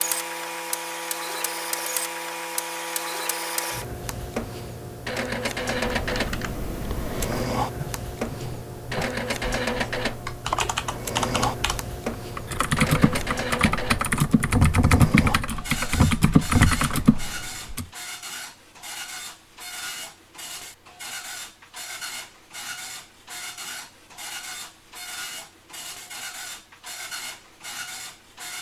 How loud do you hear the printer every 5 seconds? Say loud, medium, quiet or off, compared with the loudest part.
loud, loud, loud, medium, medium, medium.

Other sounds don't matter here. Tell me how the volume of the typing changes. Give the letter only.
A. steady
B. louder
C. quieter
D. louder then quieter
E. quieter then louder
B.